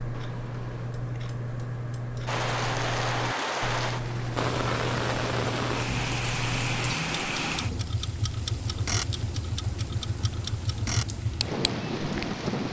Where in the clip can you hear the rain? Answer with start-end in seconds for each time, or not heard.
2.2-12.6.